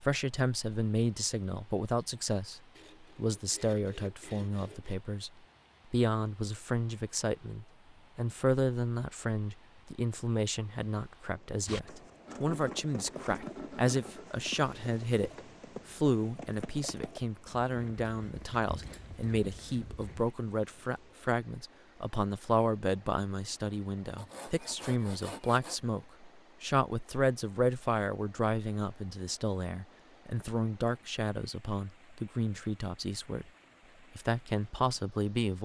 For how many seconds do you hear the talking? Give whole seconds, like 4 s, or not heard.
34 s.